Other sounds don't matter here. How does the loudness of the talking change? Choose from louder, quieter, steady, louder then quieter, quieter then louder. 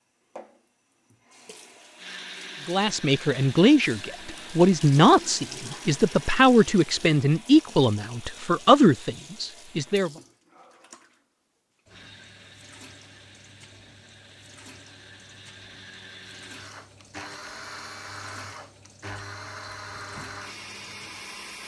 steady.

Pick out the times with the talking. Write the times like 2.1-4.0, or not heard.
2.6-10.1.